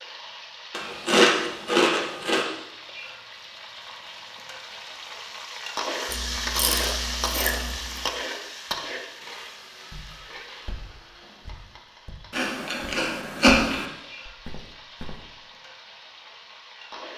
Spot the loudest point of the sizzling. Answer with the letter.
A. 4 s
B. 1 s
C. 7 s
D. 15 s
C.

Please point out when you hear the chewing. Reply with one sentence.
The chewing can be heard from 0.7 to 2.5 s, from 6.0 to 8.0 s and from 12.3 to 13.8 s.